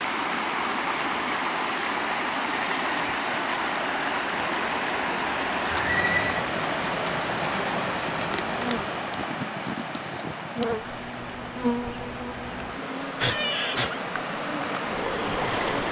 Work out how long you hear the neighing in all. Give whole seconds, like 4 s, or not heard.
2 s.